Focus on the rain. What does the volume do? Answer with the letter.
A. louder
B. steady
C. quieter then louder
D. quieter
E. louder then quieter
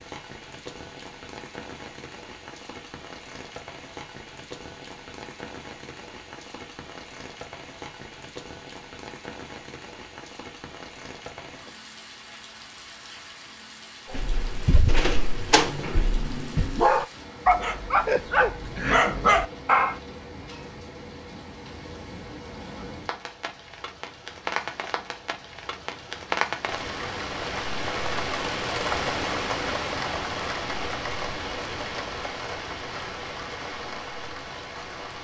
A.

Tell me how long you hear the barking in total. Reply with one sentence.
You can hear the barking for 6 seconds altogether.